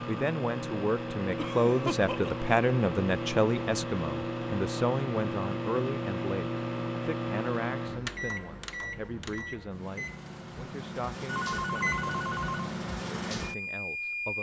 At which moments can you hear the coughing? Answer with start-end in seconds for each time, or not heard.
1.4-2.5.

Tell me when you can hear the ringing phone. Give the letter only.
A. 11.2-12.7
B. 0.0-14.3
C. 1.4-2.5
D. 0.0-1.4
A.